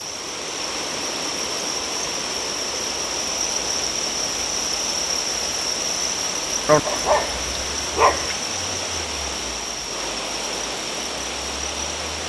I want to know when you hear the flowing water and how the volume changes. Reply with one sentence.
You can hear the flowing water from 0.0 to 12.2 s, at a steady volume.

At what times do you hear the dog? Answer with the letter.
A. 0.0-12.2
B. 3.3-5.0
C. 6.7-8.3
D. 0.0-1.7
C.